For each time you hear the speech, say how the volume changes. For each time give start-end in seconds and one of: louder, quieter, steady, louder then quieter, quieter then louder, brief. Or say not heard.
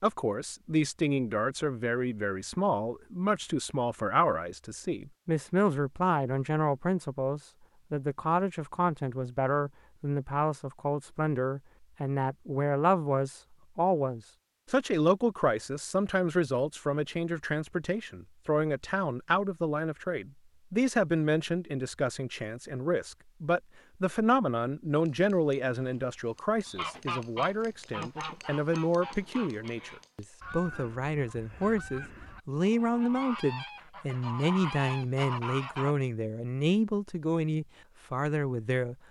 0.0-39.0 steady.